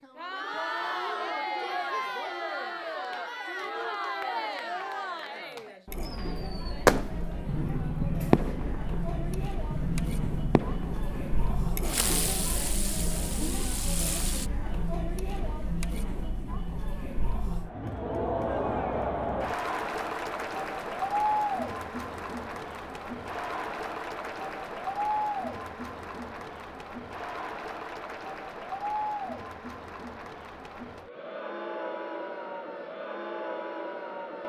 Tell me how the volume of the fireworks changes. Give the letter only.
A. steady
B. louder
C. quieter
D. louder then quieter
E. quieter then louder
C.